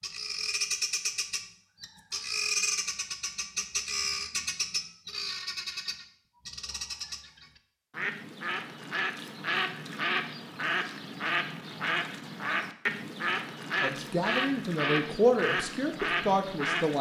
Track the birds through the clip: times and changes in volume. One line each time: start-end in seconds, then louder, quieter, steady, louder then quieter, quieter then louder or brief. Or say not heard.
0.0-16.9 steady.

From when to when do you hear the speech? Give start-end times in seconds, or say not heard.
13.8-16.9.